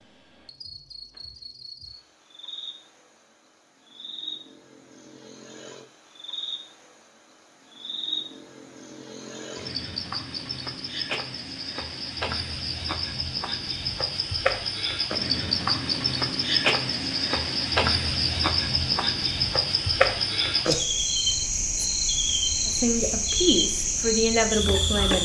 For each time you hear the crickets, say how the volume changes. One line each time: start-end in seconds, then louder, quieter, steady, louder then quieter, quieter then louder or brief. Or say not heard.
0.0-25.2 louder.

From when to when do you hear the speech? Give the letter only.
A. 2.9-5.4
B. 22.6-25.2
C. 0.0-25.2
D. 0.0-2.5
B.